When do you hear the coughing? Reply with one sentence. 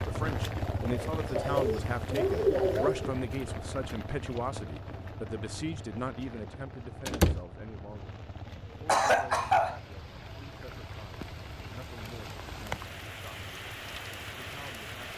You can hear the coughing from 0.6 to 3.1 s and from 8.8 to 9.8 s.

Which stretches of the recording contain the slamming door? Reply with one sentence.
You can hear the slamming door from 7.0 to 7.5 s.